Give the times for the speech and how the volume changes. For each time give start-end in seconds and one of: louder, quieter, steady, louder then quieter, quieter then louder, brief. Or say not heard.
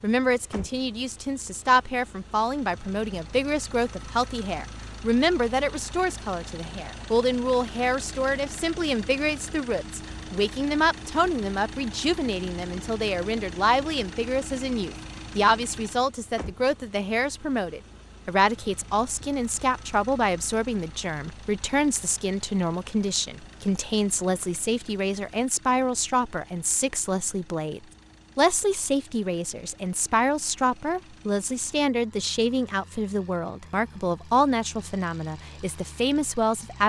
0.0-36.8 steady.